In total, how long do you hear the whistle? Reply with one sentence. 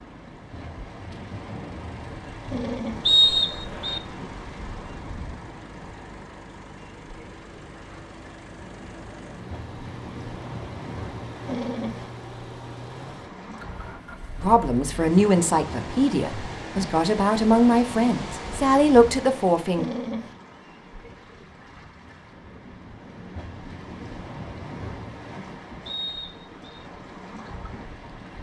You can hear the whistle for 2 seconds altogether.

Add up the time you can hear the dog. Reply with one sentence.
You can hear the dog for 2 seconds altogether.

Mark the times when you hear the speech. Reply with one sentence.
You can hear the speech from 14.4 to 19.9 s.